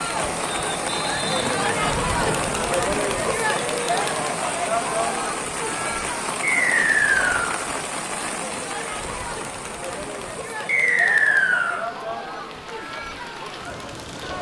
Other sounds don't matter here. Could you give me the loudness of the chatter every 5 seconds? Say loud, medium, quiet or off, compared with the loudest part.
loud, medium, medium.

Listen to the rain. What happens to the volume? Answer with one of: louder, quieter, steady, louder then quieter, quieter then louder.
quieter.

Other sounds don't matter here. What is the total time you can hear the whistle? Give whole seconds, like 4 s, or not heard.
4 s.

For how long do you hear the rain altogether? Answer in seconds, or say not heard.
14 s.